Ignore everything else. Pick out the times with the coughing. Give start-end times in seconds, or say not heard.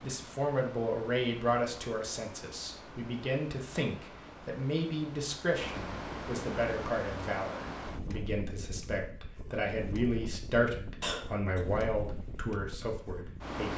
11.0-11.6.